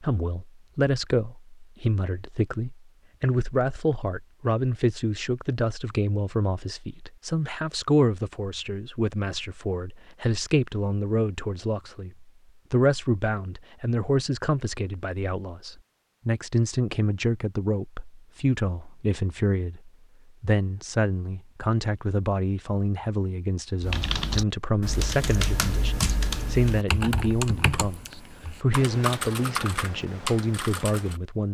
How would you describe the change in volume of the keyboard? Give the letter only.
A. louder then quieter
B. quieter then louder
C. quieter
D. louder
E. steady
E.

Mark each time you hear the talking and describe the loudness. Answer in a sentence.
You can hear the talking from 0.0 to 31.4 s, at a steady volume.